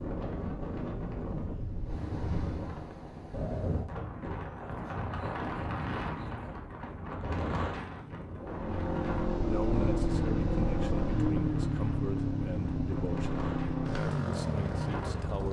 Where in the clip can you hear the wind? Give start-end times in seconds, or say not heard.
0.0-15.4.